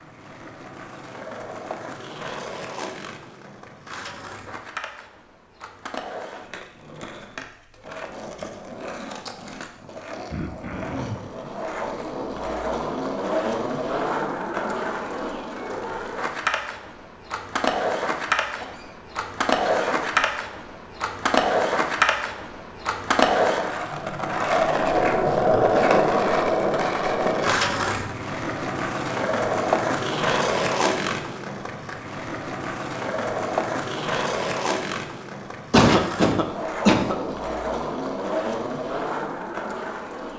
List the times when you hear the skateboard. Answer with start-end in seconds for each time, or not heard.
0.0-40.3.